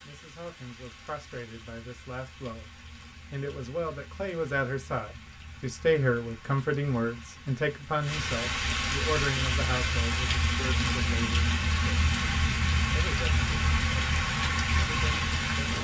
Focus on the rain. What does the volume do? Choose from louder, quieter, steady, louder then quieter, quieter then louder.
louder.